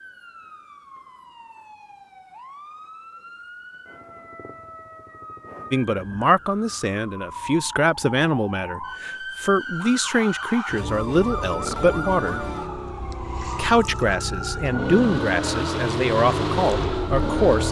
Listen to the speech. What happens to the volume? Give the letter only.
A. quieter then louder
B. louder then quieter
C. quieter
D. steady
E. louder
D.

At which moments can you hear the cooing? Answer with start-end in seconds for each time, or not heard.
not heard.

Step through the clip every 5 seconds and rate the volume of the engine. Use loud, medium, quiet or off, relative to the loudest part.
off, off, medium, loud.